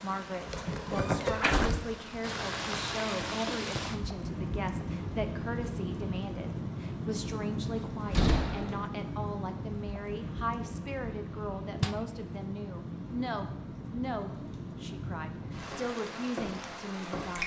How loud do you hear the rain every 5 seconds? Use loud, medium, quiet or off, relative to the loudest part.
loud, loud, medium, loud.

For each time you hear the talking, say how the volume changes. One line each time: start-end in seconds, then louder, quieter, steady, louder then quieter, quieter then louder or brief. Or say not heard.
0.0-17.4 steady.